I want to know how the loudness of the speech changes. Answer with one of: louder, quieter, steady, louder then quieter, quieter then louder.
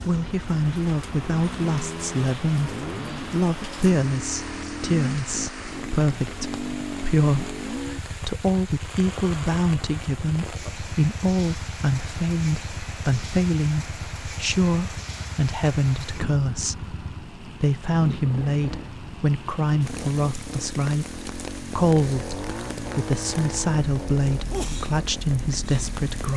steady.